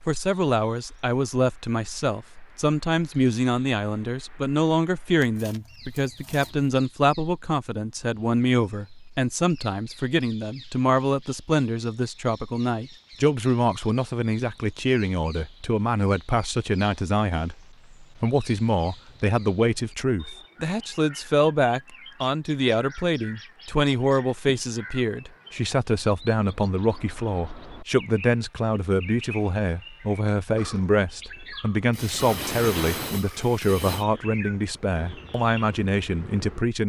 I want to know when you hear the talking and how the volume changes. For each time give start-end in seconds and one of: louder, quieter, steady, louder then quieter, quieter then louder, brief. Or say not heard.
0.1-36.8 steady.